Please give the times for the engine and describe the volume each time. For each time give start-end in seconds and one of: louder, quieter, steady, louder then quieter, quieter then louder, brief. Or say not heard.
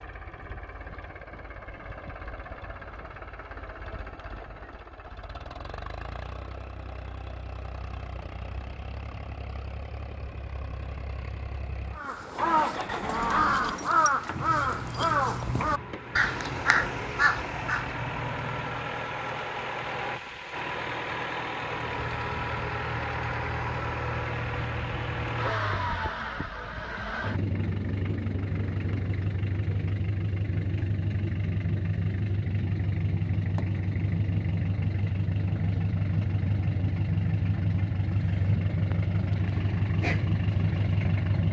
0.0-41.4 louder.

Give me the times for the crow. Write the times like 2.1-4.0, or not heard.
11.9-17.9.